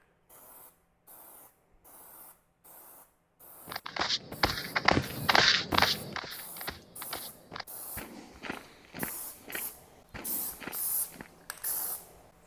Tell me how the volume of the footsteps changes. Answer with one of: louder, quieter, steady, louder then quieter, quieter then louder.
quieter.